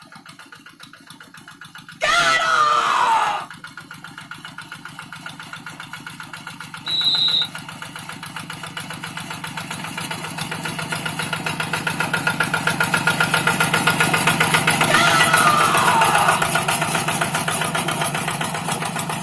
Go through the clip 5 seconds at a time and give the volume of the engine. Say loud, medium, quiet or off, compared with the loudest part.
quiet, quiet, loud, loud.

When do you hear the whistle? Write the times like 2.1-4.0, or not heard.
6.8-7.5.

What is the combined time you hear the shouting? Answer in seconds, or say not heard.
3 s.